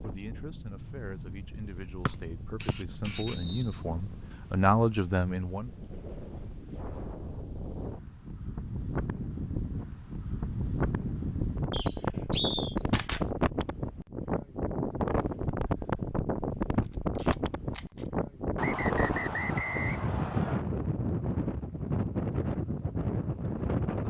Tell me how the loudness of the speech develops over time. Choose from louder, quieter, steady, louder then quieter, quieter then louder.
louder.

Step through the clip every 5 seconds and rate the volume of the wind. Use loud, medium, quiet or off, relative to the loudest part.
quiet, medium, loud, loud, loud.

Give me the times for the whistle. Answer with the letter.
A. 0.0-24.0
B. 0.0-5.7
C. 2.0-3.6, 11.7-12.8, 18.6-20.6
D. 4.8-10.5
C.